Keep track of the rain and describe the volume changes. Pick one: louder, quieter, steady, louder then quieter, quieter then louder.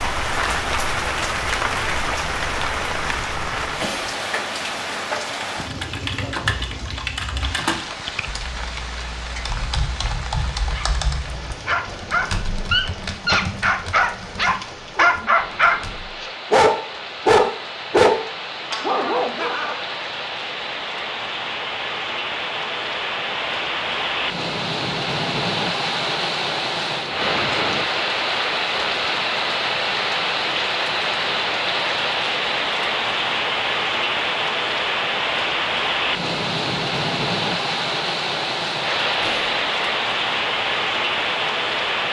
quieter then louder.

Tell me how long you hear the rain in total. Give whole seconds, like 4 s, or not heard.
42 s.